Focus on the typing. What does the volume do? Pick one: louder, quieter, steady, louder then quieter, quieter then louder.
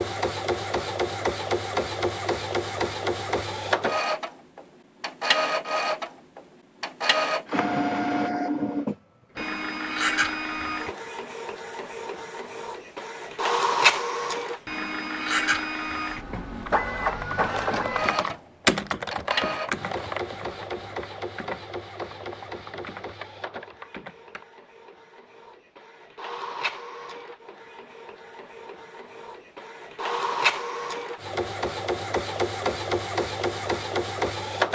louder then quieter.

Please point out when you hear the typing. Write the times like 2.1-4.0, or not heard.
16.6-24.4.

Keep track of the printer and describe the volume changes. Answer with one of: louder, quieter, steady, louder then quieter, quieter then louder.
quieter then louder.